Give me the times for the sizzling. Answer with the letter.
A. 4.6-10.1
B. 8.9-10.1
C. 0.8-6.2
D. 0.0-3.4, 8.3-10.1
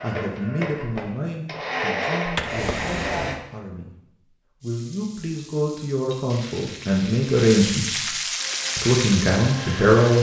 A.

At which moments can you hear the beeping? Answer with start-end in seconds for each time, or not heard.
not heard.